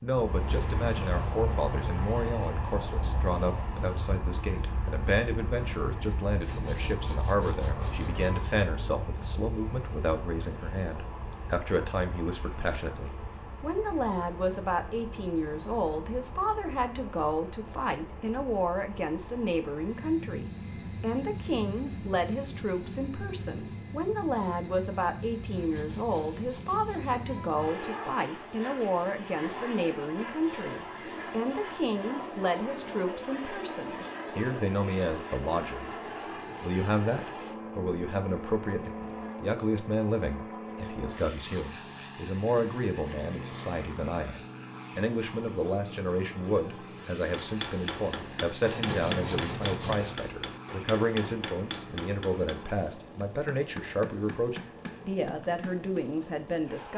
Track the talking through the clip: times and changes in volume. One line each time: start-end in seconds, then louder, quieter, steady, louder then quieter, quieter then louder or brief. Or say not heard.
0.0-35.9 steady
36.6-56.9 steady.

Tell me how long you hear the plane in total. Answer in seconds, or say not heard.
57 s.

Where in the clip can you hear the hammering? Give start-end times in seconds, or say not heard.
47.2-56.1.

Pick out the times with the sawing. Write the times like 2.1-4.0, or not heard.
6.4-8.4, 25.5-27.5, 48.6-50.2.